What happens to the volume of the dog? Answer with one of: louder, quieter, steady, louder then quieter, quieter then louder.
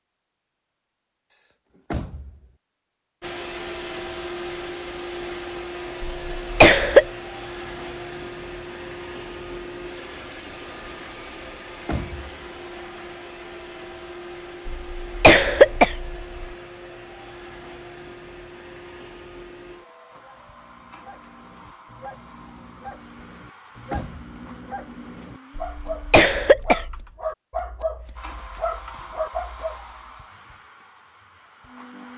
louder.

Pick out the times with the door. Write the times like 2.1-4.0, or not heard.
1.3-2.5, 11.3-12.4, 23.3-24.3.